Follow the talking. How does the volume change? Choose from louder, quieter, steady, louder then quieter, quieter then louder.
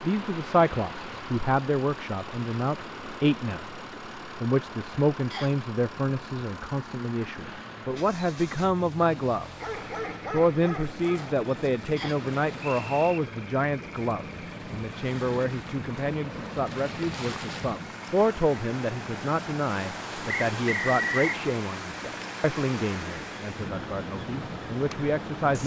steady.